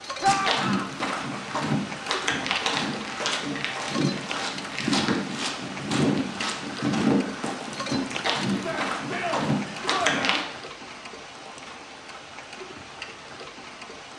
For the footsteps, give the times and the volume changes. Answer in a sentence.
The footsteps can be heard from 0.2 to 10.4 s, at a steady volume.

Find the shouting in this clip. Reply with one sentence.
The shouting can be heard from 0.2 to 0.9 s and from 8.5 to 10.4 s.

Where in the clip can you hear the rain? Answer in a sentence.
The rain can be heard from 0.0 to 14.1 s.